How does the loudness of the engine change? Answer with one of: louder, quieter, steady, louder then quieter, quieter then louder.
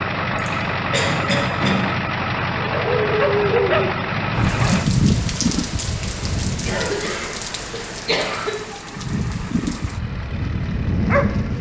quieter.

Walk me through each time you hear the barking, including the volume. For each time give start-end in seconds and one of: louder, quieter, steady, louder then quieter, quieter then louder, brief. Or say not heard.
2.5-7.0 quieter
8.9-11.5 brief.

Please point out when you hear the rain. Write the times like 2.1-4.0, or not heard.
4.3-11.5.